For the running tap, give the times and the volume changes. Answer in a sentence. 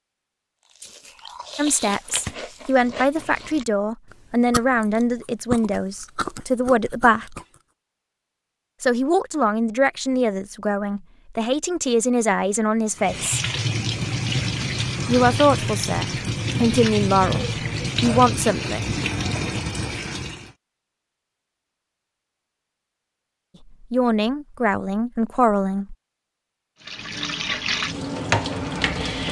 The running tap can be heard from 12.9 to 20.5 s, at a steady volume; and briefly from 26.8 to 29.2 s.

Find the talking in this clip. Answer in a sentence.
The talking can be heard from 1.6 to 7.4 s, from 8.8 to 13.4 s, from 15.1 to 18.9 s and from 23.8 to 25.9 s.